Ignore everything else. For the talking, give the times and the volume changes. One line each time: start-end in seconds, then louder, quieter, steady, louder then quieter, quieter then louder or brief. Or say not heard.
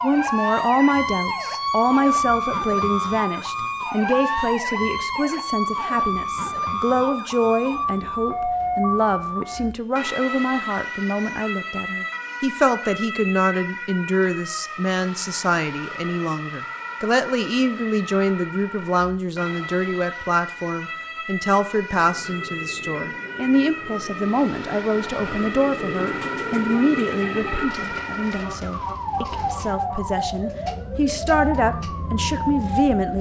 0.0-33.1 steady.